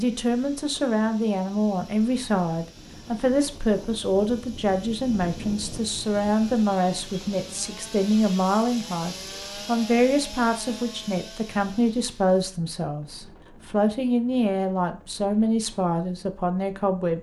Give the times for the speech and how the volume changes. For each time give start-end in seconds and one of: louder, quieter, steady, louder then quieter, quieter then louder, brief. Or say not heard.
0.0-17.1 steady.